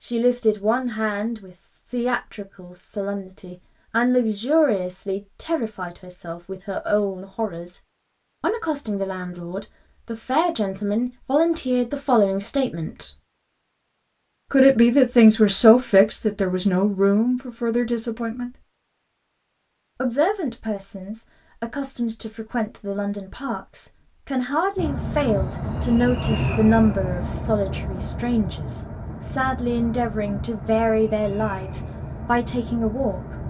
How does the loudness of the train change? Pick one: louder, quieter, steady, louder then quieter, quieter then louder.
quieter.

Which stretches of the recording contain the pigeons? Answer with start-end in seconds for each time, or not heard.
not heard.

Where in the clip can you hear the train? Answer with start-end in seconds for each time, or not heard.
24.8-33.4.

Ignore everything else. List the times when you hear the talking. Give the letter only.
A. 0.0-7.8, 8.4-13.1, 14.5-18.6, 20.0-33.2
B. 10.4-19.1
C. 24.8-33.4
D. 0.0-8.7
A.